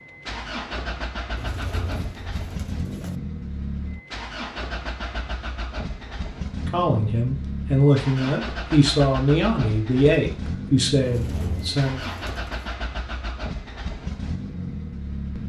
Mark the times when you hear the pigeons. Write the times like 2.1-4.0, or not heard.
1.4-3.1, 11.0-12.7.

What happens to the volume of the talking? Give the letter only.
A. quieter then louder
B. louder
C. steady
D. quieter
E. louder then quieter
C.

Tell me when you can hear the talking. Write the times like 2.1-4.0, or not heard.
6.6-12.0.